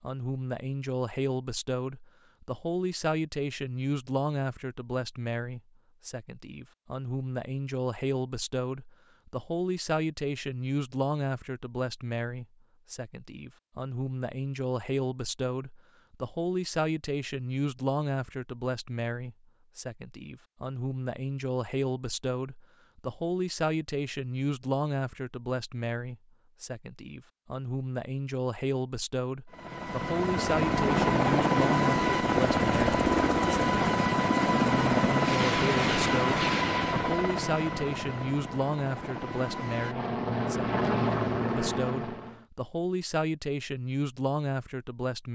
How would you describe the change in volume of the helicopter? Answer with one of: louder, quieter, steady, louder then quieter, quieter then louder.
quieter then louder.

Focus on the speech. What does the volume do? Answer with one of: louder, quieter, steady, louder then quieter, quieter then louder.
steady.